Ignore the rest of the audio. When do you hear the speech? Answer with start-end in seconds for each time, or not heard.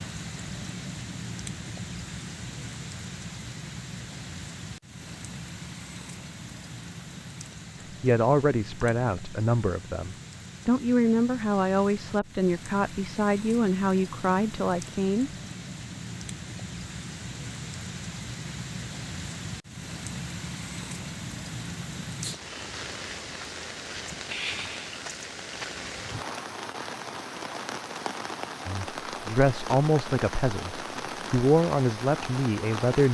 8.0-15.3, 28.6-33.0.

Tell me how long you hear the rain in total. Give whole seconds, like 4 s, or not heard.
33 s.